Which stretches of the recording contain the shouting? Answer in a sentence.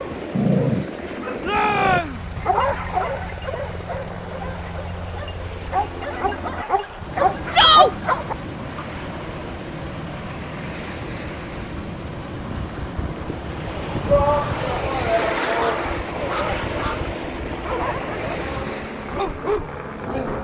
The shouting can be heard from 1.4 to 2.2 s, from 7.5 to 8.0 s and from 14.1 to 16.6 s.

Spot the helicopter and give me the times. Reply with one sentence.
You can hear the helicopter from 0.0 to 20.3 s.